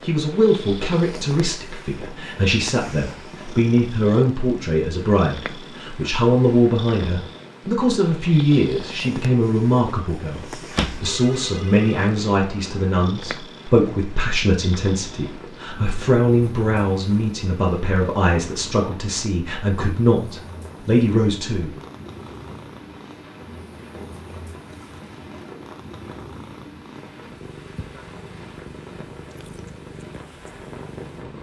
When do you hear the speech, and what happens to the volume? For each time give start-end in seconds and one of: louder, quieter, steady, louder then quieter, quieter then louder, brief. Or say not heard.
0.0-21.8 steady.